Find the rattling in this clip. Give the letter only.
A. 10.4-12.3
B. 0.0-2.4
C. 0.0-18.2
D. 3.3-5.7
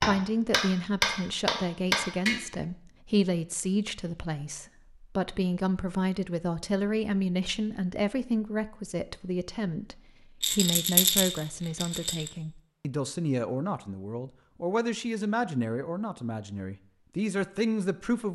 A.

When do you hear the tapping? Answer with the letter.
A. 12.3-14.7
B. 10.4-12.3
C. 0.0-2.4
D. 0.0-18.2
C.